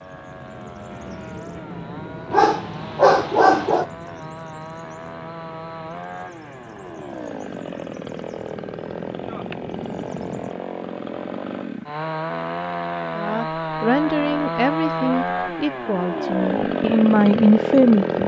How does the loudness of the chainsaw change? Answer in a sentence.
The volume of the chainsaw goes up.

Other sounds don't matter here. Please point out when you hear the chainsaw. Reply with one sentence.
The chainsaw can be heard from 0.0 to 18.2 s.